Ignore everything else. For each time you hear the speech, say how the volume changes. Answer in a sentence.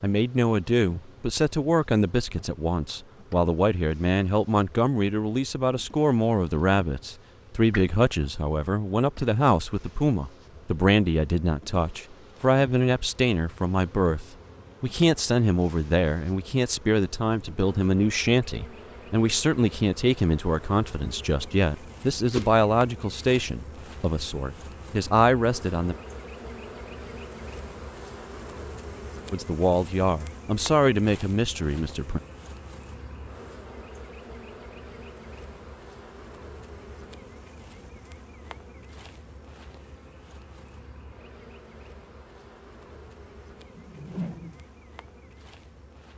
You can hear the speech from 0.0 to 25.9 s, at a steady volume; and briefly from 29.3 to 32.2 s.